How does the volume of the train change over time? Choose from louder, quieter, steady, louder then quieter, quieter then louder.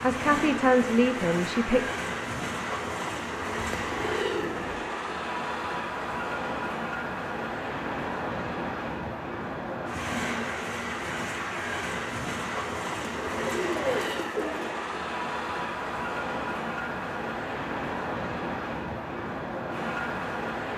steady.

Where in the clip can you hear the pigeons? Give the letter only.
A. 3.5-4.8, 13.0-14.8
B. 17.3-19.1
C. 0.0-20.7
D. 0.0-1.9
A.